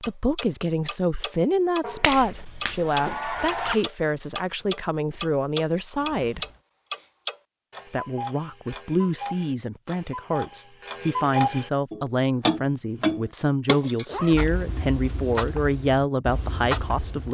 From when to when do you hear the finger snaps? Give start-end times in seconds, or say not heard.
1.8-3.8.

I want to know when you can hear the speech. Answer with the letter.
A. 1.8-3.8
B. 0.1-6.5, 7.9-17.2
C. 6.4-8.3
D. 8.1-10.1
B.